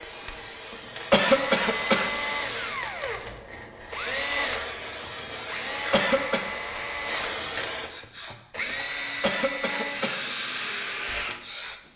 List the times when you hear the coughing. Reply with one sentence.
The coughing can be heard from 0.9 to 2.1 s, from 5.7 to 6.4 s and from 9.0 to 10.2 s.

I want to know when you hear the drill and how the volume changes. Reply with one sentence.
You can hear the drill from 0.0 to 11.4 s, at a steady volume.